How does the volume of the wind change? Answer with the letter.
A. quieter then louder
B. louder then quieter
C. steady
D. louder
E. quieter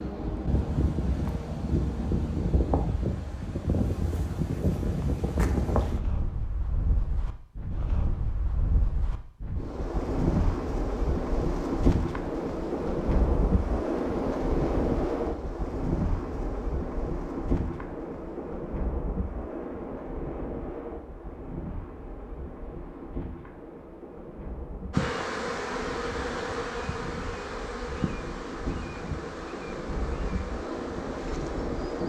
E.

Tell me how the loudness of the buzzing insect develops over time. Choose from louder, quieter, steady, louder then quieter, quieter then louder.
quieter.